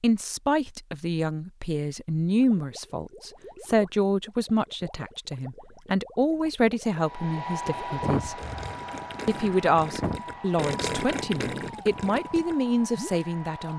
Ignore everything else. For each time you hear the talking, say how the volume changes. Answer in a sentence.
The talking can be heard from 0.0 to 8.4 s, at a steady volume; and from 9.2 to 13.7 s, getting quieter then louder.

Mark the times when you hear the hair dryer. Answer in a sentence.
You can hear the hair dryer from 7.0 to 13.7 s.